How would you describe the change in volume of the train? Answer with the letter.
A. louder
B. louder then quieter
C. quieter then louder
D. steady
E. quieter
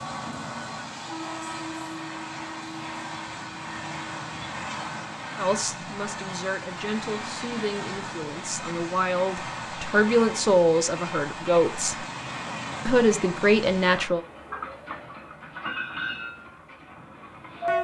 D.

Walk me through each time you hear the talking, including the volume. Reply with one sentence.
You can hear the talking from 5.3 to 12.1 s, getting louder; and briefly from 12.8 to 14.2 s.